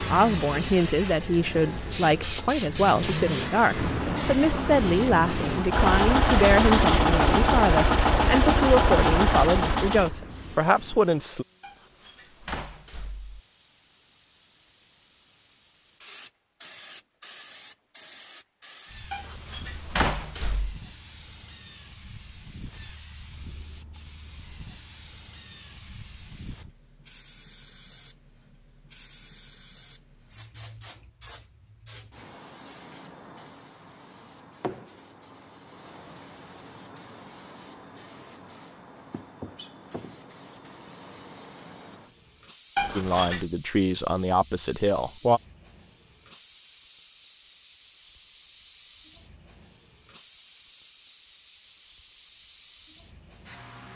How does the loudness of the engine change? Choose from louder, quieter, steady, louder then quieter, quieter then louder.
louder.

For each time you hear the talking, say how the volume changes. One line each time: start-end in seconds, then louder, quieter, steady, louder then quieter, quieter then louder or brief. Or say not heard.
0.0-11.4 steady
43.0-45.4 brief.